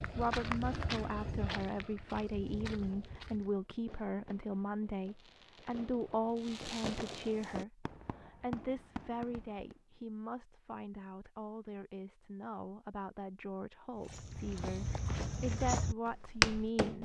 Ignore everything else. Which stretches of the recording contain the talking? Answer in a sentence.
The talking can be heard from 0.1 to 17.0 s.